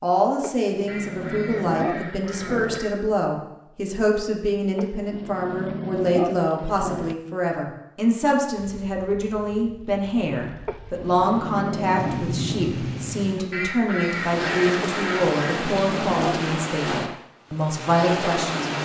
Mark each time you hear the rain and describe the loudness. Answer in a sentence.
You can hear the rain from 8.6 to 18.7 s, getting louder.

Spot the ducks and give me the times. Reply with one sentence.
The ducks can be heard from 0.8 to 2.9 s and from 13.5 to 15.6 s.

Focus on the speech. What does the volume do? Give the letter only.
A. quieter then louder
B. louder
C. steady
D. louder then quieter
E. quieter
C.